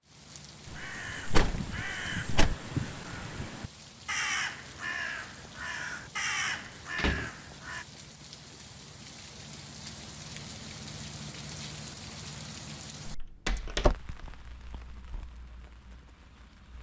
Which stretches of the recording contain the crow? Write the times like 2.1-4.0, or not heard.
0.7-7.8.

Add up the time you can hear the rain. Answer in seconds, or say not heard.
17 s.